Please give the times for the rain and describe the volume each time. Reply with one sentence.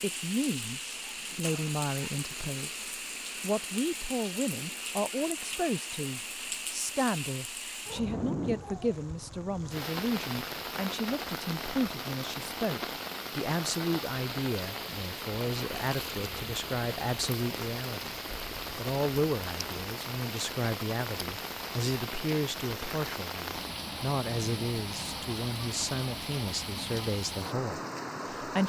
You can hear the rain from 0.0 to 28.6 s, at a steady volume.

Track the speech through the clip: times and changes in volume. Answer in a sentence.
You can hear the speech briefly from 0.0 to 2.8 s; and from 3.4 to 28.6 s, at a steady volume.